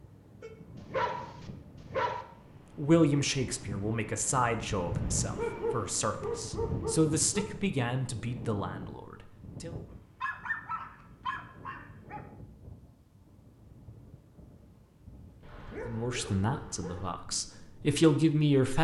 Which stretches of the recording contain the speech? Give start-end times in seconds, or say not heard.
2.8-9.8, 15.8-18.8.